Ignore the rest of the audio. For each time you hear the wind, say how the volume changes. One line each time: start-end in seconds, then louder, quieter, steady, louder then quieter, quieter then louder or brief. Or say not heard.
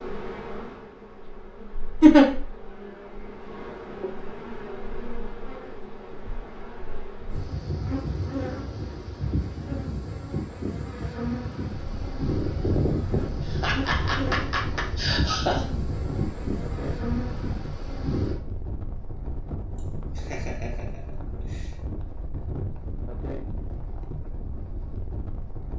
11.7-25.7 steady.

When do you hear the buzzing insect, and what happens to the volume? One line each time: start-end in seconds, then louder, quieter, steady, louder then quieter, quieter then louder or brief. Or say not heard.
0.0-18.4 louder.